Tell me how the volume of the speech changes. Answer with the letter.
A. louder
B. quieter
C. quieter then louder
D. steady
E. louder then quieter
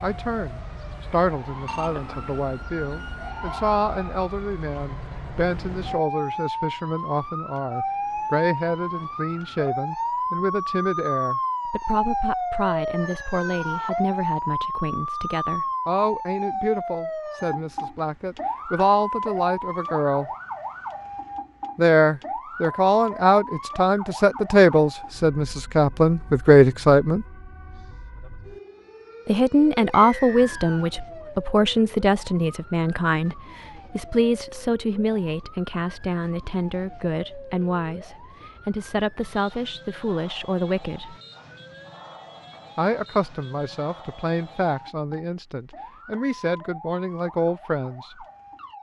E.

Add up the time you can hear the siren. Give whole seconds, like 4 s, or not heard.
49 s.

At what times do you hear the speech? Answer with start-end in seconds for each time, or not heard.
0.0-20.3, 21.8-27.2, 29.2-41.1, 42.8-48.2.